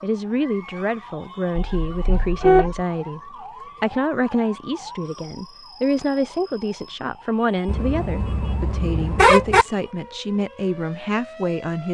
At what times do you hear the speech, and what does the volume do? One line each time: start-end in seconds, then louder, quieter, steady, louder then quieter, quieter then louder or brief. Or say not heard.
0.0-11.8 steady.